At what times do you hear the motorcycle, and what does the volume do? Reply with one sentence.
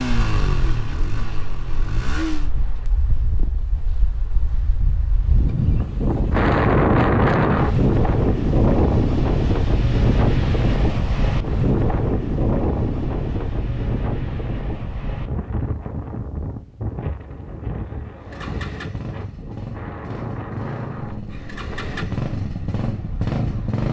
The motorcycle can be heard briefly from 0.0 to 2.5 s; and from 18.1 to 23.8 s, getting louder.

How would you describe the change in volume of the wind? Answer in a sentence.
The loudness of the wind goes up, then down.